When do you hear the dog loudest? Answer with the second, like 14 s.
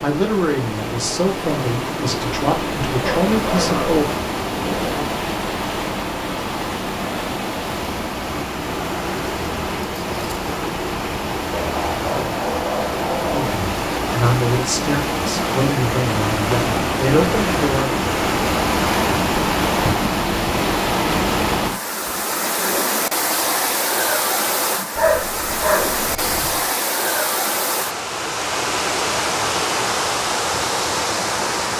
25 s.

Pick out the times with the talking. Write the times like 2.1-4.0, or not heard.
0.0-4.0, 13.3-17.9.